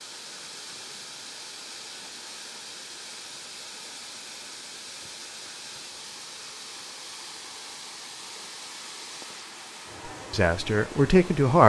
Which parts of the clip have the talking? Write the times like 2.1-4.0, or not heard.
10.3-11.6.